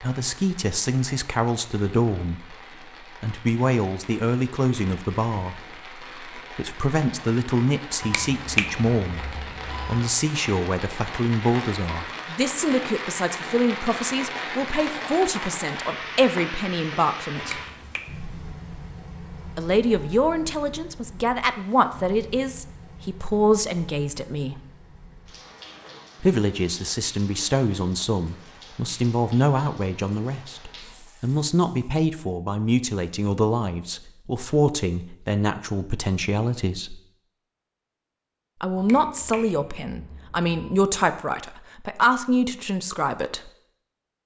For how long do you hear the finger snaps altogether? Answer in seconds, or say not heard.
5 s.